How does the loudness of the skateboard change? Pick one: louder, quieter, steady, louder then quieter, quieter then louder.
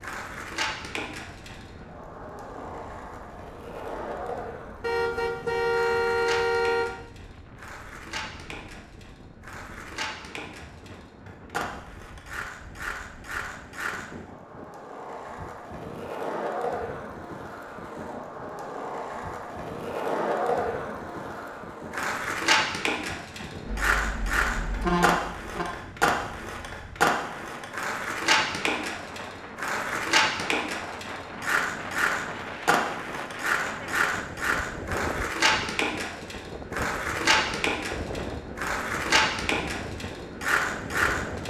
louder.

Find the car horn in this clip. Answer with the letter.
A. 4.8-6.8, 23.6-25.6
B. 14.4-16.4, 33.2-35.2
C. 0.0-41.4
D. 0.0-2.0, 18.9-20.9
A.